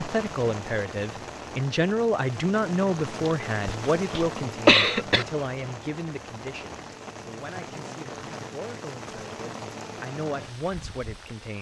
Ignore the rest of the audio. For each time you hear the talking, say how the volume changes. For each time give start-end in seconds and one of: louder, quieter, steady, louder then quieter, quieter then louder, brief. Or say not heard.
0.0-11.5 quieter then louder.